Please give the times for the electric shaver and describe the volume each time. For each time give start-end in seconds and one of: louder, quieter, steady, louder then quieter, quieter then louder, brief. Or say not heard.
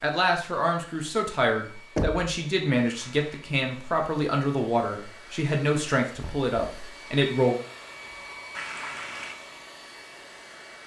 not heard.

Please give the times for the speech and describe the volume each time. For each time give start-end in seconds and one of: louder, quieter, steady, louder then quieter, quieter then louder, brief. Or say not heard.
0.0-7.5 steady.